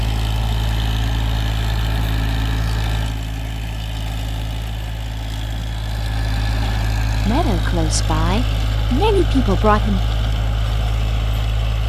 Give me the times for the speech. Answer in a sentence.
The speech can be heard from 7.2 to 10.0 s.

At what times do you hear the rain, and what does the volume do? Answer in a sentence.
The rain can't be heard in this clip.